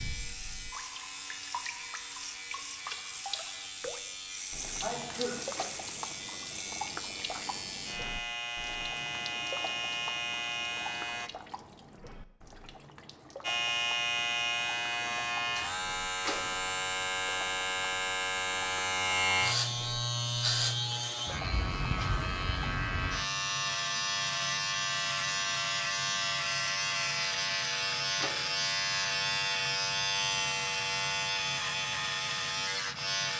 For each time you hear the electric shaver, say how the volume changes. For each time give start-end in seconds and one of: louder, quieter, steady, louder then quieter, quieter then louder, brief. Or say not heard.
0.0-11.3 louder
13.4-33.3 steady.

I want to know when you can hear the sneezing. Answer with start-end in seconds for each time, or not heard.
4.8-5.4.